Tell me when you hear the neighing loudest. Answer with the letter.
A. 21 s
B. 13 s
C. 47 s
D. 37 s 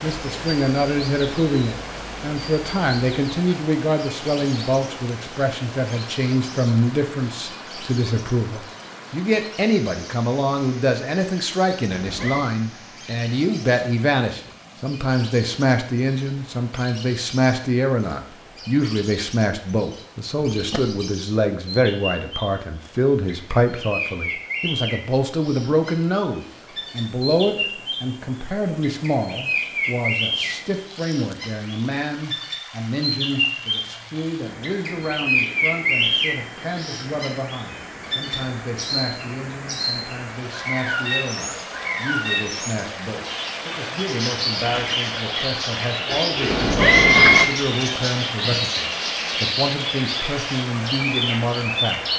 C.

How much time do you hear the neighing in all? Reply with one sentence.
You can hear the neighing for 2 seconds altogether.